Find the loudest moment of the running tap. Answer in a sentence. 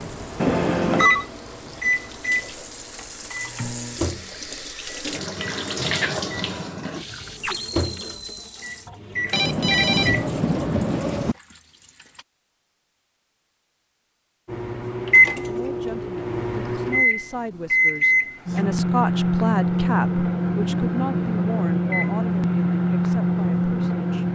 The volume of the running tap peaks at 6 seconds.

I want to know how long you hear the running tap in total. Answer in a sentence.
You can hear the running tap for 12 seconds altogether.